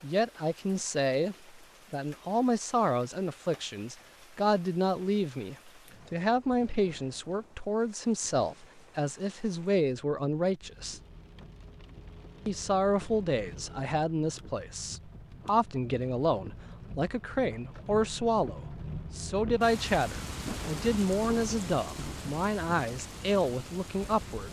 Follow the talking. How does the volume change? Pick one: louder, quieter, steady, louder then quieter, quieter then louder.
steady.